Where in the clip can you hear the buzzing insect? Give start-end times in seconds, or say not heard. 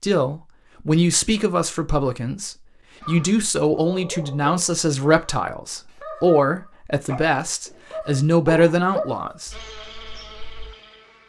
9.5-11.2.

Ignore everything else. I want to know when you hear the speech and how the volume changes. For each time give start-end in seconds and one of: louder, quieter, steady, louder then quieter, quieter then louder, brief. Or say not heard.
0.0-9.6 steady.